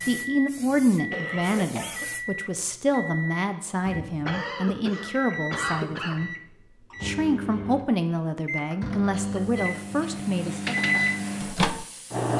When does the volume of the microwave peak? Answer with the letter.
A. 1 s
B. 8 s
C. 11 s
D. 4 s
C.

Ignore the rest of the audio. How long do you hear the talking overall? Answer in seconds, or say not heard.
10 s.